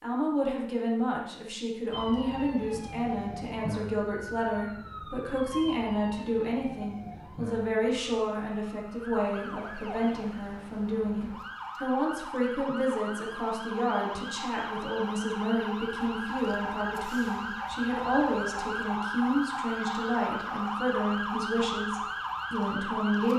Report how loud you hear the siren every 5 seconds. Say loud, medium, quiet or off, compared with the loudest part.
medium, medium, medium, loud, loud.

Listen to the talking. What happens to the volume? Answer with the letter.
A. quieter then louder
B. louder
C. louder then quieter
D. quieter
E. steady
E.